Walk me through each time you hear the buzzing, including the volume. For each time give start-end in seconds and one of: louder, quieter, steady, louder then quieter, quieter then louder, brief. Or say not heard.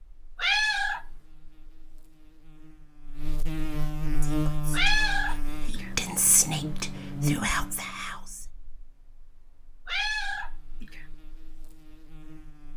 0.0-12.7 louder then quieter.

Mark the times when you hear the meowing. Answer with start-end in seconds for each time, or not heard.
0.3-1.1, 4.7-5.9, 9.8-11.1.